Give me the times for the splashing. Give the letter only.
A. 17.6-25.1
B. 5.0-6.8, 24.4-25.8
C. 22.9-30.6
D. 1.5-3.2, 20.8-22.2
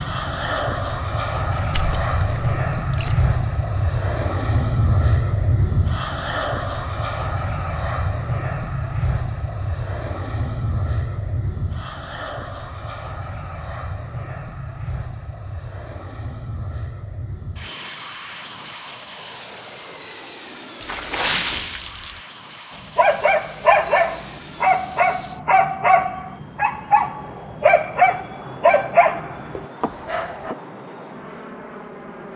D.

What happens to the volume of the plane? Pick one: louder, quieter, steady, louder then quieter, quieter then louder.
quieter.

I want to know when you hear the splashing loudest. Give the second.
21 s.